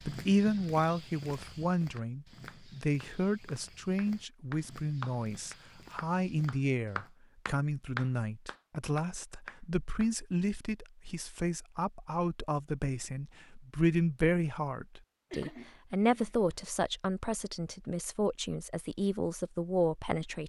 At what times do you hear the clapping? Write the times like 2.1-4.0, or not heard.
1.4-10.1.